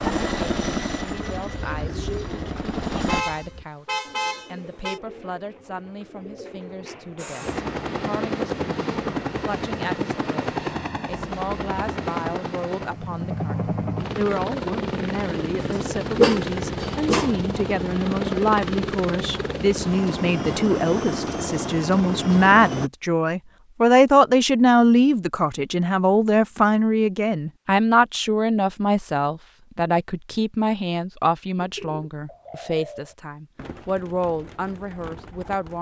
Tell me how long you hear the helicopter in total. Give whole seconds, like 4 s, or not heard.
19 s.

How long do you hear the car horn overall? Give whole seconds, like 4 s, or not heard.
2 s.